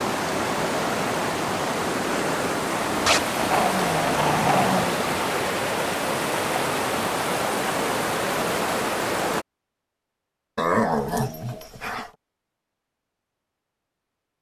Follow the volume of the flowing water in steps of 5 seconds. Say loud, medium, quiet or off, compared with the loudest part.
loud, loud, off.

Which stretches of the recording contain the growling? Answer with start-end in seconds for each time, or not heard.
3.0-5.0, 10.6-12.1.